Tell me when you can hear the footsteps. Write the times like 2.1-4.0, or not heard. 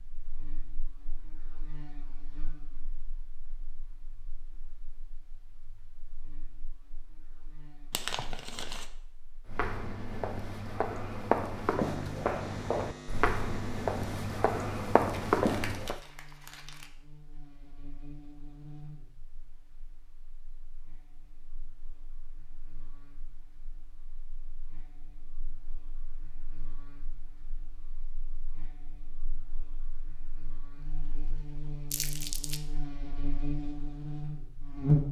9.4-16.0.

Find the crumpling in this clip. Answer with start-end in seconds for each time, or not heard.
7.9-8.8, 15.3-16.9, 31.9-32.6.